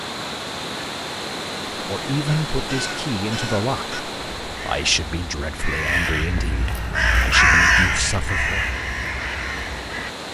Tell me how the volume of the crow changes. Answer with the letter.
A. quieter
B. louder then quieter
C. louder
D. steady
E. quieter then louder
B.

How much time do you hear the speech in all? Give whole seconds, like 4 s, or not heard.
7 s.